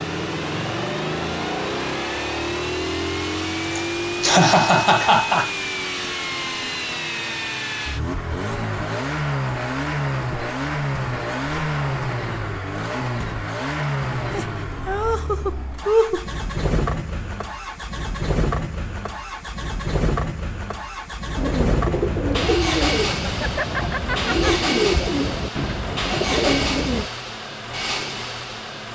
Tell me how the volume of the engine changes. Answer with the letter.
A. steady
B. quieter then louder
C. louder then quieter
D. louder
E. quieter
A.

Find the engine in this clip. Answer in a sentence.
You can hear the engine from 0.0 to 28.9 s.